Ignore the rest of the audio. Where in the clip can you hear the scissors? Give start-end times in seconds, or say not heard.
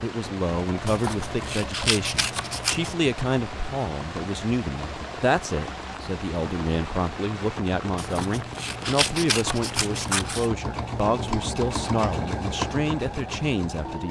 0.8-3.0, 8.0-10.5.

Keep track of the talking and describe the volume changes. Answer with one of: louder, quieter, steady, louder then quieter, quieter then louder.
steady.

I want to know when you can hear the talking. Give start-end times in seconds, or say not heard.
0.0-14.0.